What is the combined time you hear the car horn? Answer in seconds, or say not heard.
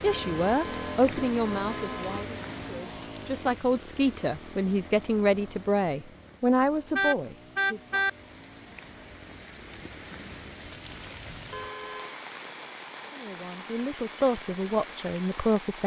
4 s.